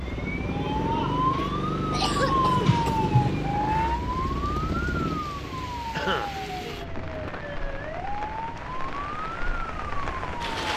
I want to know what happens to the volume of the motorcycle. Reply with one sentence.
The volume of the motorcycle goes down.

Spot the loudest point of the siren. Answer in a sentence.
The loudest moment of the siren is at 3 seconds.